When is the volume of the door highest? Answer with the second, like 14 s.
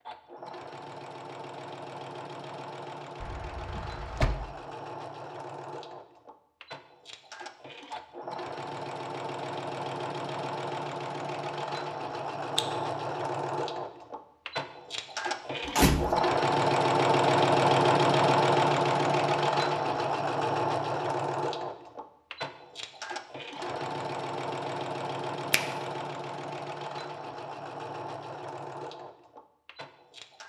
16 s.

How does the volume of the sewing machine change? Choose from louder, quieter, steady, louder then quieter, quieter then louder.
louder then quieter.